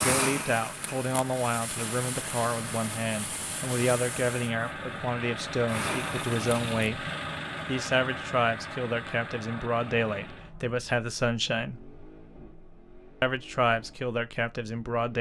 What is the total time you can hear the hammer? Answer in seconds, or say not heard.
not heard.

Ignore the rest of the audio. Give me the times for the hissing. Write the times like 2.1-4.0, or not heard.
0.0-6.9.